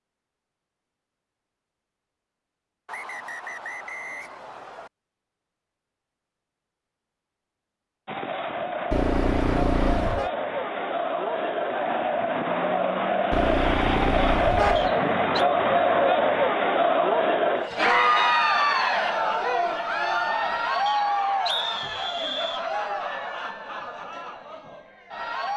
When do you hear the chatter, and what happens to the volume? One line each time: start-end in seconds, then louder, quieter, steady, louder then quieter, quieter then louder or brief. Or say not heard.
8.1-25.5 louder then quieter.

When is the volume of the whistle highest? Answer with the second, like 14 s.
22 s.